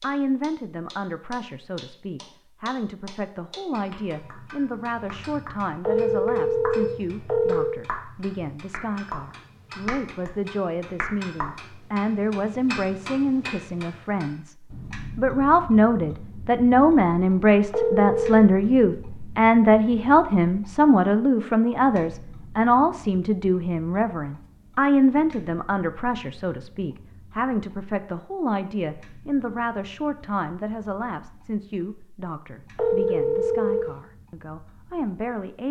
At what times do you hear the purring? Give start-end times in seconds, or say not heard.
not heard.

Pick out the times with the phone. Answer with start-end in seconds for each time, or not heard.
5.8-7.8, 17.7-18.4, 32.8-34.0.